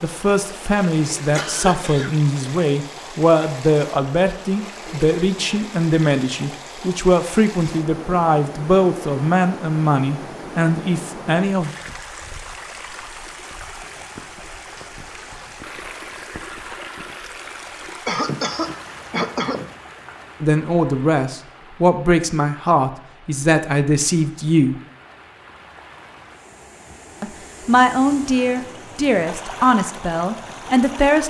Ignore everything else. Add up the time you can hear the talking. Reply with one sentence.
The talking can be heard for 20 seconds in total.